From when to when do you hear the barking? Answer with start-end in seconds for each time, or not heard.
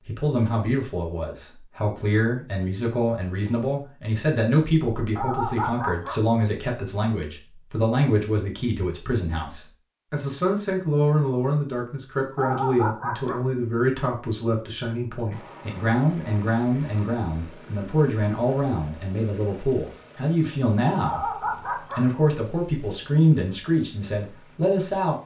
5.2-6.2, 12.3-13.4, 21.0-22.1.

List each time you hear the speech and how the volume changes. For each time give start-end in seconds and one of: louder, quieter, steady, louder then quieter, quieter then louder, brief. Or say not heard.
0.0-25.2 steady.